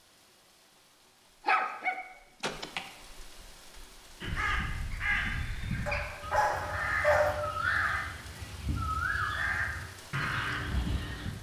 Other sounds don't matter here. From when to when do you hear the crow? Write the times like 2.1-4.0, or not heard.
4.2-11.3.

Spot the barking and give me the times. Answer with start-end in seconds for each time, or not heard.
1.4-2.8, 5.8-7.4.